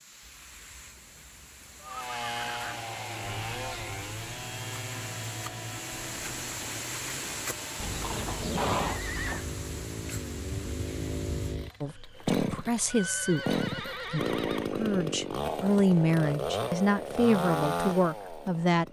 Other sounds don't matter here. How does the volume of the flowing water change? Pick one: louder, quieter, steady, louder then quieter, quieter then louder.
louder then quieter.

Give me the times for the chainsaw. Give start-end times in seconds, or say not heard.
1.9-18.8.